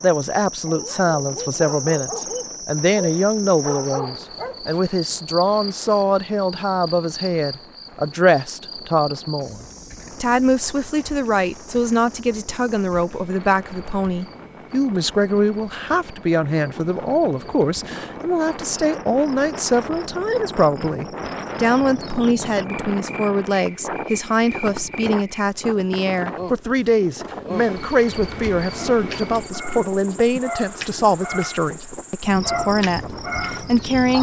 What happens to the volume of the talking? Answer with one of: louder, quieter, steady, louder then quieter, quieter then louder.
steady.